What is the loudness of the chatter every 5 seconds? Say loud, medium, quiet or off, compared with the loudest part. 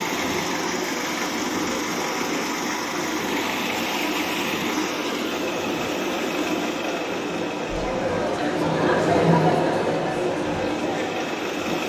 medium, loud, loud.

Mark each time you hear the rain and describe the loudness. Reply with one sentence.
The rain can't be heard in this clip.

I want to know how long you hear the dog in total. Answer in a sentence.
The dog can't be heard in this clip.